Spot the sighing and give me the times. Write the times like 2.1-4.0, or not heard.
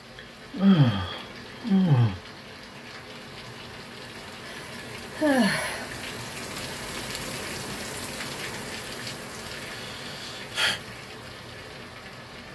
0.1-2.1, 4.5-5.9, 9.7-10.8.